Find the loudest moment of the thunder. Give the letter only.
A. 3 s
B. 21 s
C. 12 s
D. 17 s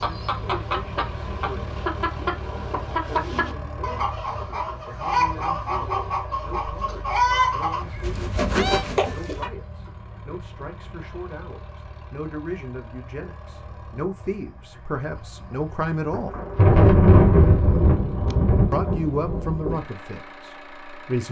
D.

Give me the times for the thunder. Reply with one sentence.
The thunder can be heard from 16.1 to 19.8 s.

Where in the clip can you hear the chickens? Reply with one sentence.
The chickens can be heard from 0.0 to 9.5 s.